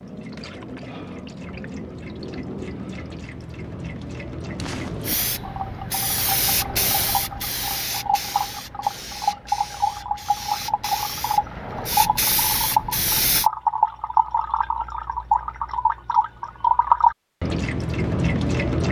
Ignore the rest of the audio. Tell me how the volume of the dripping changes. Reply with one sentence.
The volume of the dripping goes up.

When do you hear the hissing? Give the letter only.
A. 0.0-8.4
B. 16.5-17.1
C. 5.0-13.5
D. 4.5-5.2
C.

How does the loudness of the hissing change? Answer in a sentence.
The volume of the hissing goes down, then up.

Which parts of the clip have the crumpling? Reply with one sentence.
The crumpling can be heard from 4.5 to 5.2 s.